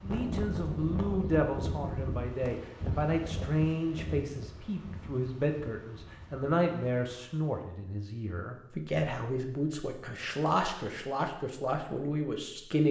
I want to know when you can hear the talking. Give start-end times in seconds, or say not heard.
0.0-12.8.